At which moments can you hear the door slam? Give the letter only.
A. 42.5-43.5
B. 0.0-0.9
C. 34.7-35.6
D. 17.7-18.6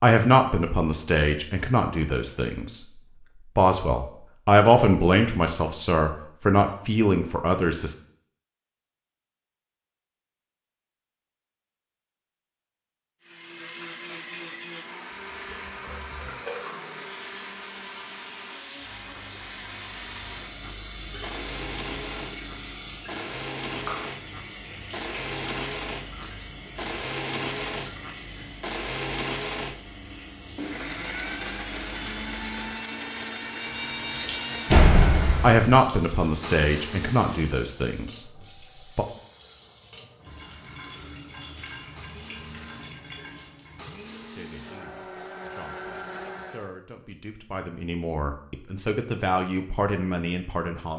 C.